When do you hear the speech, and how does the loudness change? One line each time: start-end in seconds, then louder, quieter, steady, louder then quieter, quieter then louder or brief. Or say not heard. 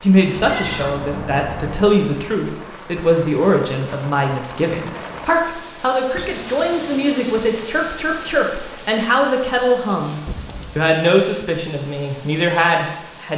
0.0-13.3 steady.